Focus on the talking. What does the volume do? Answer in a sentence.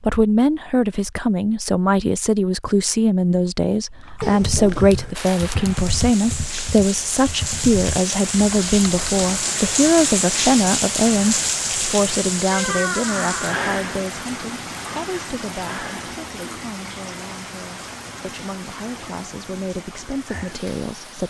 The volume of the talking goes down.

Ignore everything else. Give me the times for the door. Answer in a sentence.
The door can be heard from 4.2 to 5.2 s and from 12.5 to 13.6 s.